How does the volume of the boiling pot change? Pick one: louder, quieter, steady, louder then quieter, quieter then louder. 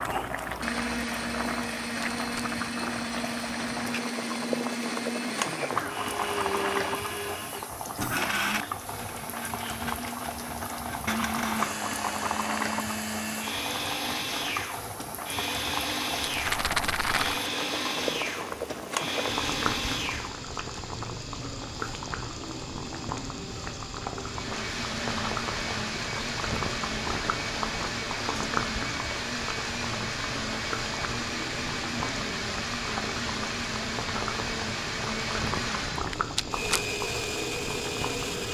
steady.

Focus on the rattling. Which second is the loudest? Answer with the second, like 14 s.
17 s.